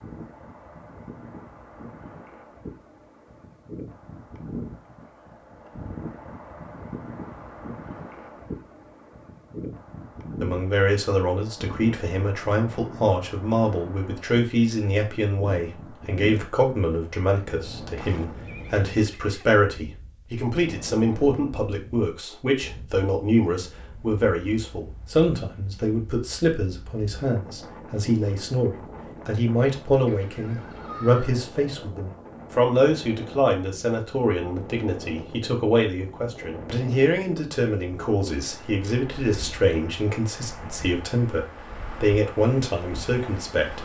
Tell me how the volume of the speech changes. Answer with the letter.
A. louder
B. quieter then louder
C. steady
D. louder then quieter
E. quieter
C.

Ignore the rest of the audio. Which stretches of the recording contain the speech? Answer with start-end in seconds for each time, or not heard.
10.4-43.7.